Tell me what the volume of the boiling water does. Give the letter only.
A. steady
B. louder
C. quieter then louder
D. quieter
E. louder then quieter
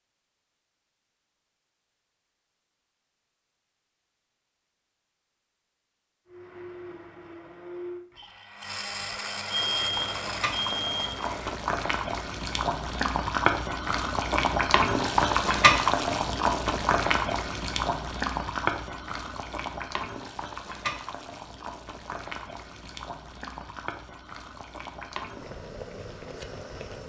E.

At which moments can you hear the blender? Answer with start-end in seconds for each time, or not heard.
6.2-11.7.